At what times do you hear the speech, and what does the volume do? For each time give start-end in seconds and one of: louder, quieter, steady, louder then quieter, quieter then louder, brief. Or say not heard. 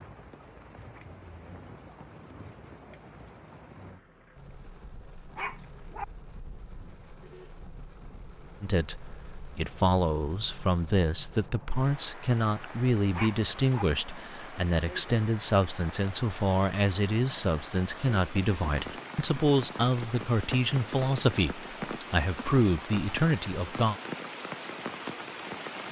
8.6-23.9 steady.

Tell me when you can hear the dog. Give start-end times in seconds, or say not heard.
5.3-6.0, 13.1-13.8.